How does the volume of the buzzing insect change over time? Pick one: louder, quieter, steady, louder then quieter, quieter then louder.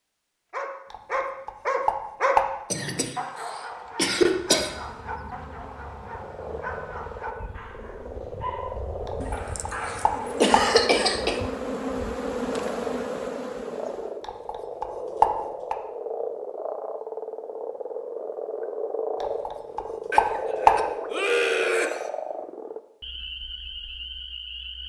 louder.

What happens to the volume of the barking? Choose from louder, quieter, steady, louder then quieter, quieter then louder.
quieter.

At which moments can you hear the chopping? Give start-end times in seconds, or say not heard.
0.9-2.5, 9.1-10.7, 14.2-15.8, 19.2-20.8.